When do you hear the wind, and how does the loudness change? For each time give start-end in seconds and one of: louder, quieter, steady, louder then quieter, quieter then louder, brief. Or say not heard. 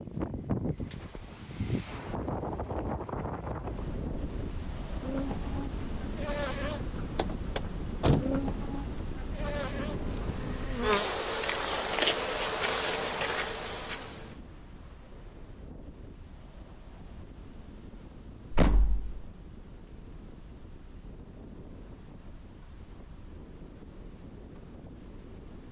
0.0-25.6 quieter.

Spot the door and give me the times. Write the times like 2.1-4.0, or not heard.
7.2-8.3, 18.5-19.2.